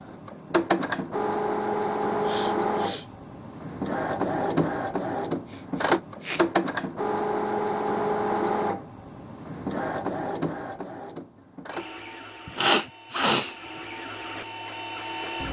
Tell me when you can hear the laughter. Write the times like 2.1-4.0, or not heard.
not heard.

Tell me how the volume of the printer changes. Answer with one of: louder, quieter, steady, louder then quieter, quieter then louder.
quieter.